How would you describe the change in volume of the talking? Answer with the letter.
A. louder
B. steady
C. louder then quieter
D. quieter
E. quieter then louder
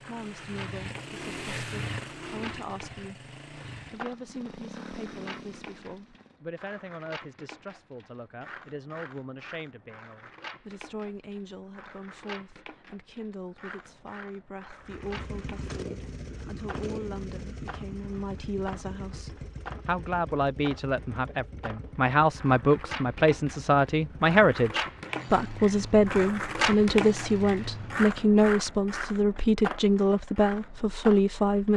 A.